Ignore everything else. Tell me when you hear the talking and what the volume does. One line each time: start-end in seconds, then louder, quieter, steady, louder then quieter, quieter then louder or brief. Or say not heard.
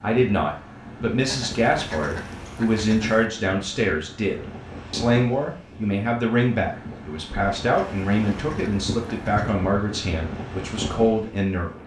0.0-11.8 steady.